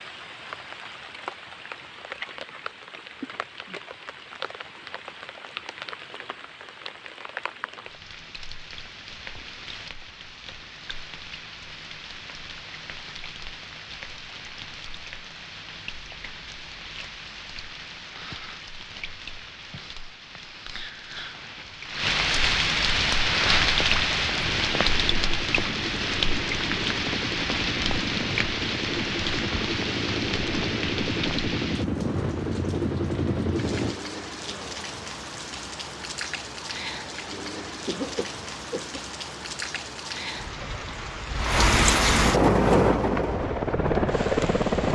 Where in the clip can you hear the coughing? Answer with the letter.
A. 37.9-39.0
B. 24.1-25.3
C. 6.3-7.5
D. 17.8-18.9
A.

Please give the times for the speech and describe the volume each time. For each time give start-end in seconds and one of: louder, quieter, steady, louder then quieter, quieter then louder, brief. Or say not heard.
not heard.